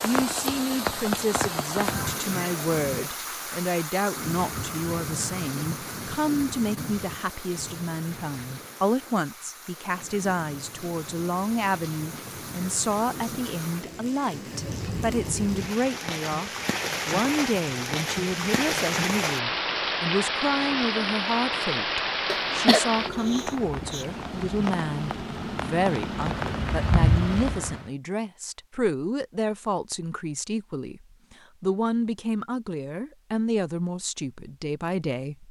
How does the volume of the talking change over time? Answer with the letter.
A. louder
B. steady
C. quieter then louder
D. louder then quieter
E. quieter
B.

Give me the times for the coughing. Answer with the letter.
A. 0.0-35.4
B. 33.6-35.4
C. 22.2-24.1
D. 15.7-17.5
C.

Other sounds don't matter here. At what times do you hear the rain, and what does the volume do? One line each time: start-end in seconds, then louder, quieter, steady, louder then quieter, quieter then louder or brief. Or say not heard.
0.0-27.9 quieter then louder.